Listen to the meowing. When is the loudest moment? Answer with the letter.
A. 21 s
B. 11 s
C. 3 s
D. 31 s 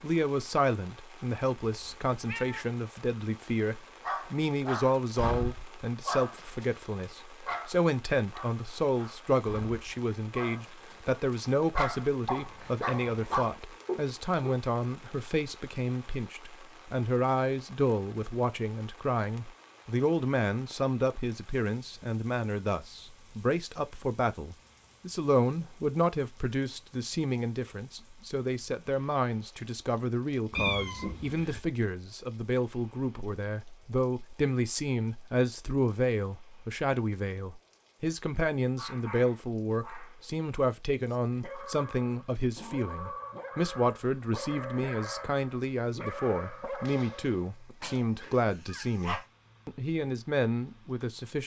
D.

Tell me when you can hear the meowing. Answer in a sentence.
You can hear the meowing from 1.7 to 2.6 s and from 30.5 to 31.6 s.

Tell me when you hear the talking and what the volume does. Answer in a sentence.
The talking can be heard from 0.0 to 51.4 s, at a steady volume.